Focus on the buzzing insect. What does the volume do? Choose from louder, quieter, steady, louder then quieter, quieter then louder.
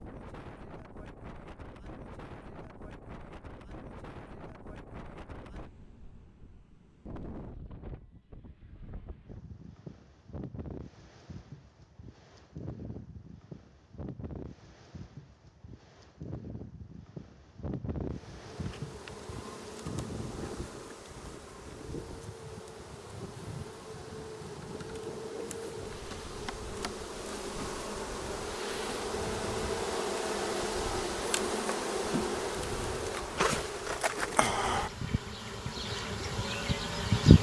louder.